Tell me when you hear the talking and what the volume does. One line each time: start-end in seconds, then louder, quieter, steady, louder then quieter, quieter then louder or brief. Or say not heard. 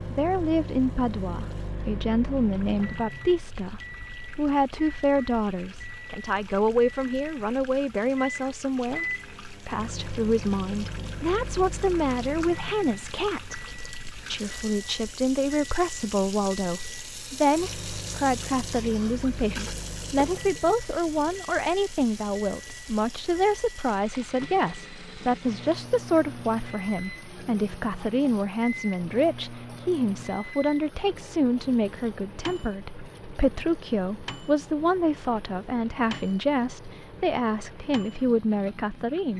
0.1-39.3 steady.